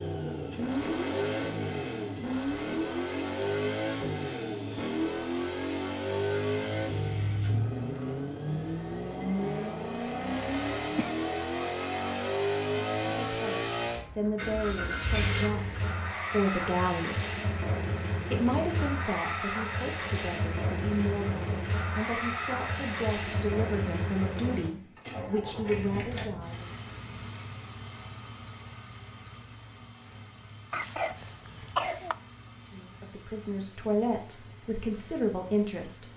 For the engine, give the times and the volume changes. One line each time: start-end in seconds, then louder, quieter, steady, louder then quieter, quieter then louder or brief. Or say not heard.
0.0-36.1 quieter.